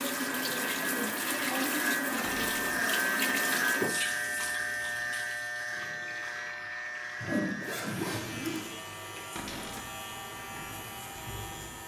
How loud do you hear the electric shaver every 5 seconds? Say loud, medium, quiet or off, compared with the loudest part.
loud, medium, medium.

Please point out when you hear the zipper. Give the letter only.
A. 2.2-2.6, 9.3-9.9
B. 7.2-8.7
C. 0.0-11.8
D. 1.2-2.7
B.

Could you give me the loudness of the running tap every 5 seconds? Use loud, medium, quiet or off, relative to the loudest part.
loud, quiet, quiet.